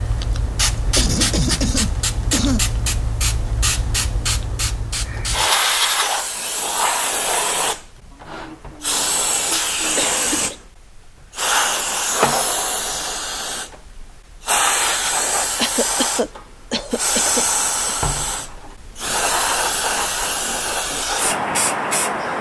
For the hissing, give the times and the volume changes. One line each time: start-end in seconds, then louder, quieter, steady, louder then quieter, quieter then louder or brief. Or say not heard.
0.0-22.3 steady.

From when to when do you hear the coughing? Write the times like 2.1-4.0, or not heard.
0.3-2.6, 8.1-10.6, 15.6-17.9.